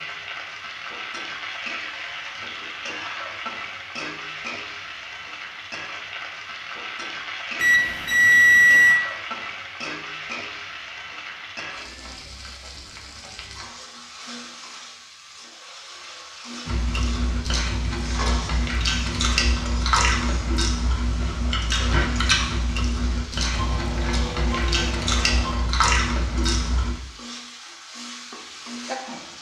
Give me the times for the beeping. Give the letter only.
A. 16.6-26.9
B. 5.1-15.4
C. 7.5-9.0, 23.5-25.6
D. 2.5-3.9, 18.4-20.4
C.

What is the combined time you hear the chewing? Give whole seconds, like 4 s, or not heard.
10 s.